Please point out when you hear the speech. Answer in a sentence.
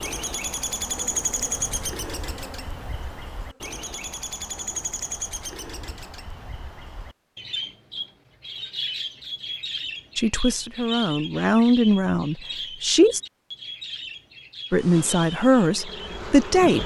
The speech can be heard from 10.2 to 13.2 s and from 14.7 to 16.8 s.